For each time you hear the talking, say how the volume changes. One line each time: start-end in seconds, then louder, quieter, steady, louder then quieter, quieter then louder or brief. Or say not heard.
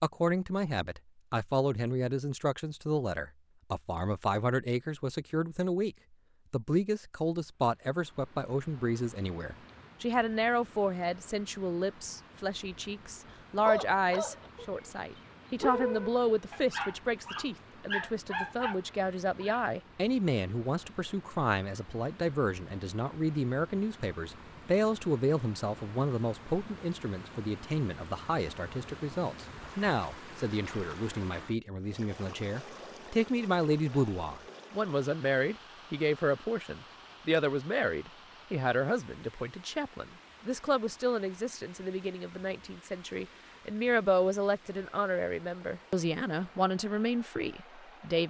0.0-48.2 steady.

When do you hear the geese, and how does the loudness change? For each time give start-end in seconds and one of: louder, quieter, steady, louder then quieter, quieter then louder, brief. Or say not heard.
not heard.